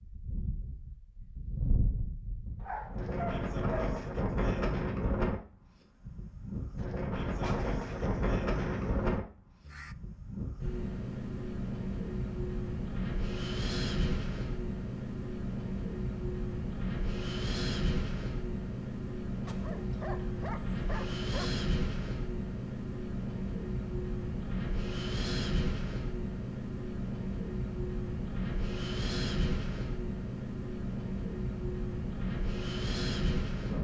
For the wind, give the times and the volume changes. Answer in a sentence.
You can hear the wind from 0.0 to 33.8 s, at a steady volume.